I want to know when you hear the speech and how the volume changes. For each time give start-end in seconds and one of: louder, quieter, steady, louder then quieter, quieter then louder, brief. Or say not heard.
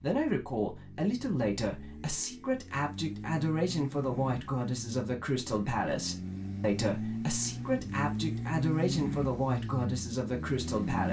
0.0-11.0 steady.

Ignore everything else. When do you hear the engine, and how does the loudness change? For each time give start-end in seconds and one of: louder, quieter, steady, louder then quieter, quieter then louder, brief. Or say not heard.
0.1-11.0 louder.